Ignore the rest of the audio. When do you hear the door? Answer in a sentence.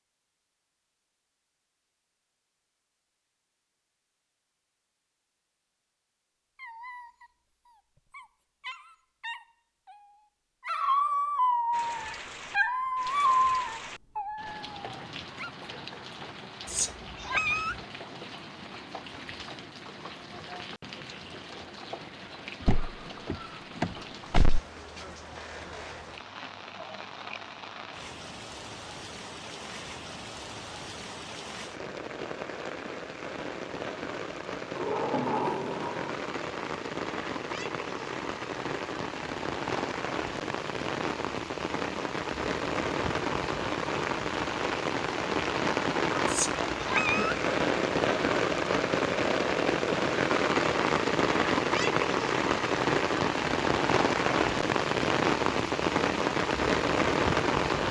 The door can be heard from 22.6 to 24.6 s and from 34.8 to 36.2 s.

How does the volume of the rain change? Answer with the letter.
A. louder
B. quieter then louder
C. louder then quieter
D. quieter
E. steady
A.